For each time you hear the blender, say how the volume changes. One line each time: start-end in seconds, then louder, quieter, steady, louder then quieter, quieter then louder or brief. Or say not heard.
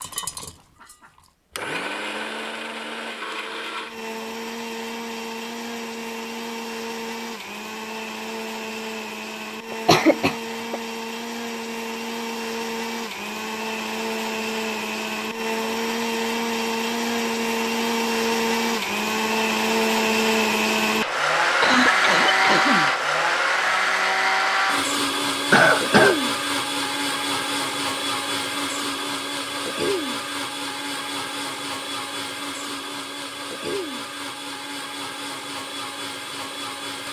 0.0-37.0 louder then quieter.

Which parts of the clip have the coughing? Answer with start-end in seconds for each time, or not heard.
9.7-10.8, 21.6-22.9, 25.5-26.2.